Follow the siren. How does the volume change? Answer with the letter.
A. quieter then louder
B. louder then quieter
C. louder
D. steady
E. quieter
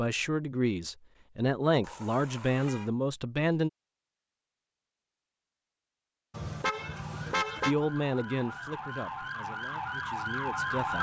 C.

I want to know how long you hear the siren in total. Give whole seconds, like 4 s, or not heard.
4 s.